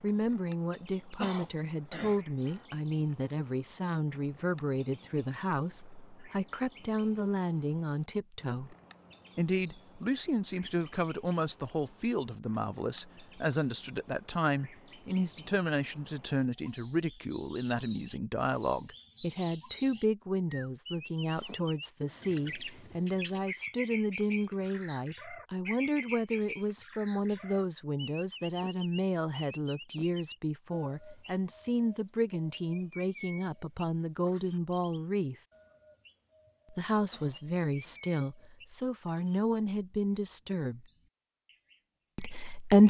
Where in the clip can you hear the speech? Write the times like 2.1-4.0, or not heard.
0.0-8.8, 9.3-35.4, 36.7-40.9, 42.1-42.8.